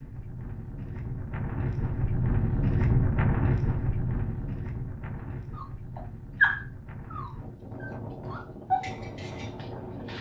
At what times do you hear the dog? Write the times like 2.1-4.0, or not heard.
5.5-10.1.